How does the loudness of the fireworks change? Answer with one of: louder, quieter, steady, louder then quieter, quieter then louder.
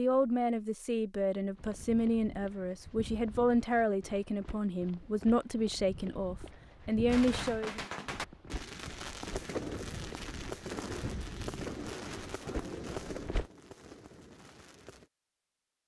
quieter.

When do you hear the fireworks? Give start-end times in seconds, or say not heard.
7.0-15.1.